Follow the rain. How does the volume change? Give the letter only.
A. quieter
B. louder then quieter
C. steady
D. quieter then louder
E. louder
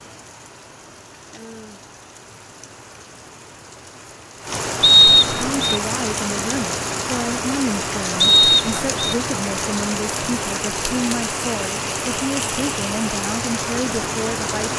E.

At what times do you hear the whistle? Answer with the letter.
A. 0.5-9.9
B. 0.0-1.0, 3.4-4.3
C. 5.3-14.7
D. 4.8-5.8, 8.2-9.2
D.